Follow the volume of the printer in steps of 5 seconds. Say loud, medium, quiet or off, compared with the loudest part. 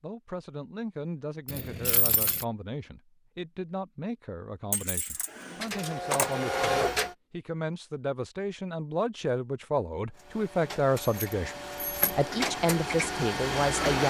off, loud, loud.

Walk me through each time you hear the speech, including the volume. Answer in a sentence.
The speech can be heard from 0.0 to 14.0 s, getting louder.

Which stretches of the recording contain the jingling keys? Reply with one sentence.
You can hear the jingling keys from 1.4 to 2.5 s, from 4.7 to 6.3 s and from 11.0 to 12.1 s.